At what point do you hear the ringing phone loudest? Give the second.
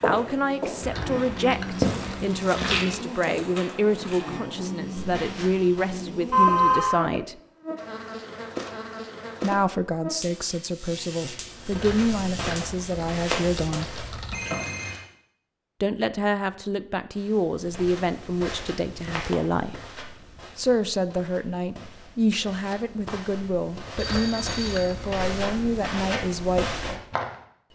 7 s.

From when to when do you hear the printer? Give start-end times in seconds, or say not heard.
not heard.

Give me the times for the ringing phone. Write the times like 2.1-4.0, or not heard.
6.3-7.0, 14.3-15.0, 23.9-24.9.